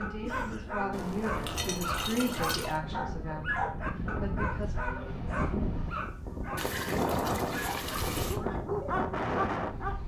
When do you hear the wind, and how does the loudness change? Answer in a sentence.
The wind can be heard from 0.0 to 10.0 s, getting louder.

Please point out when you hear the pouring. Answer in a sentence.
The pouring can be heard from 0.9 to 2.8 s and from 6.5 to 8.4 s.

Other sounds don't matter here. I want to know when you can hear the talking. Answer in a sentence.
You can hear the talking from 0.0 to 4.8 s.